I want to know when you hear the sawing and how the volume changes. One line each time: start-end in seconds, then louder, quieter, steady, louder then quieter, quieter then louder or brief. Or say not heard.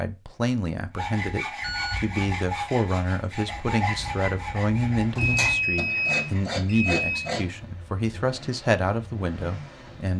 0.9-7.5 steady.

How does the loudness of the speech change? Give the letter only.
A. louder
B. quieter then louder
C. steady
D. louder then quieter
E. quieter
C.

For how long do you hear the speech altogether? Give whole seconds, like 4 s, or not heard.
10 s.